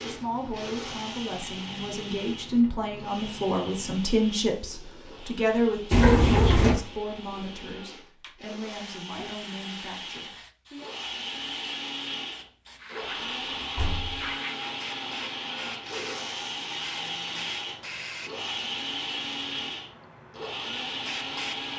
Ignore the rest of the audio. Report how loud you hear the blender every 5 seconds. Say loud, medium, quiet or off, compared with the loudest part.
medium, medium, loud, loud, loud.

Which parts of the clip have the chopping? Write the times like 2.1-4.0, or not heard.
not heard.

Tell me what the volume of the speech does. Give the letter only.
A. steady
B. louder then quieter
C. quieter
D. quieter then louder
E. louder
B.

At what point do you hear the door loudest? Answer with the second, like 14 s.
6 s.